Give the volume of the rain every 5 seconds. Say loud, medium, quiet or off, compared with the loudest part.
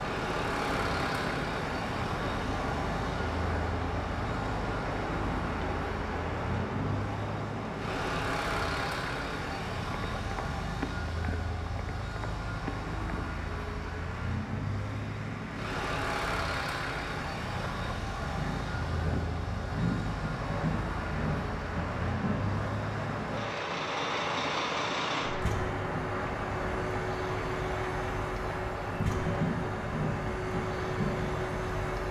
loud, loud, medium, loud, loud, loud, loud.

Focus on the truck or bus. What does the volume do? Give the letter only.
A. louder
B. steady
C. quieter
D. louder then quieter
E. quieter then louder
B.